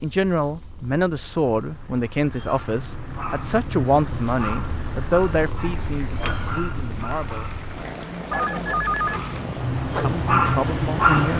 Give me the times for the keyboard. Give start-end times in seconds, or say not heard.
not heard.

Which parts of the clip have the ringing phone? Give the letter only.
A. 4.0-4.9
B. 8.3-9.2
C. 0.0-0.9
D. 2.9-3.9
B.